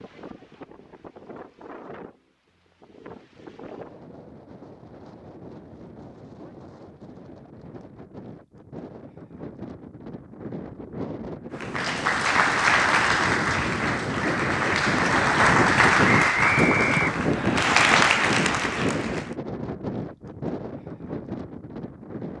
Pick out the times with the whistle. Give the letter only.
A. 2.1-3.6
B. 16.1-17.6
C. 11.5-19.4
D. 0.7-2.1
B.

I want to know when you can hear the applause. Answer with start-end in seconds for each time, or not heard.
11.5-19.4.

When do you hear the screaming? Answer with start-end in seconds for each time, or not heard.
not heard.